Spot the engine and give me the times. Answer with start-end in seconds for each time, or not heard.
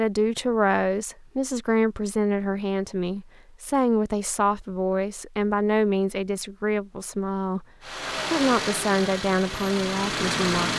7.8-10.7.